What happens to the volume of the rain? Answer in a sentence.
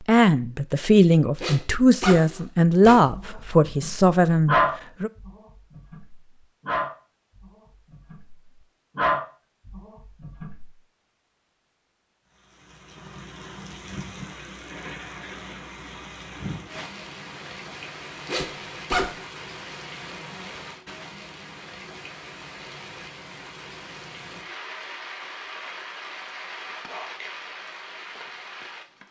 The volume of the rain stays about the same.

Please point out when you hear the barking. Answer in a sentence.
The barking can be heard from 3.0 to 10.7 s.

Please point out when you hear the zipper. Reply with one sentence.
You can hear the zipper from 1.4 to 3.0 s and from 18.2 to 19.1 s.